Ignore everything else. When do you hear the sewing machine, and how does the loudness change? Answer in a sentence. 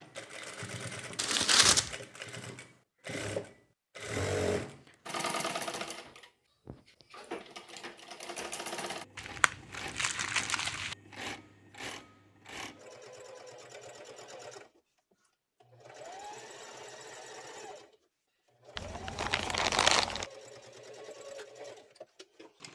The sewing machine can be heard from 0.0 to 22.6 s, getting quieter.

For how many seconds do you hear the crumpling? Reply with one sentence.
The crumpling can be heard for 4 seconds in total.